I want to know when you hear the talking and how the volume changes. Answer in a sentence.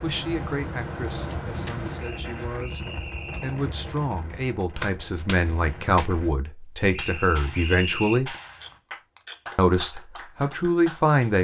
The talking can be heard from 0.0 to 8.3 s, getting louder; and briefly from 9.6 to 11.3 s.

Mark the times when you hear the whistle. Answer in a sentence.
You can hear the whistle from 1.9 to 3.6 s and from 6.9 to 8.2 s.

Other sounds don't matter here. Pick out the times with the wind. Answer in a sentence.
You can hear the wind from 0.0 to 6.3 s.